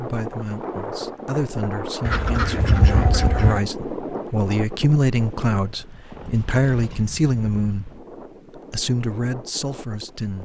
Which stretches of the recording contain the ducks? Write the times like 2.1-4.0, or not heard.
2.0-3.6.